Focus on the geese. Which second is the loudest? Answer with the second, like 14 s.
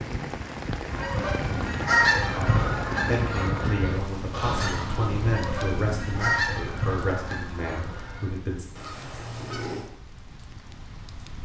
2 s.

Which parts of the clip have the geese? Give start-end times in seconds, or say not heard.
0.8-9.8.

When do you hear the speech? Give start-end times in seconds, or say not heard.
2.4-8.7.